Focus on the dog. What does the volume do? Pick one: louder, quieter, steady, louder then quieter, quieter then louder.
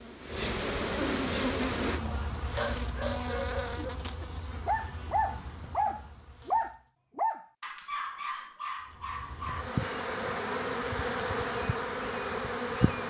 louder then quieter.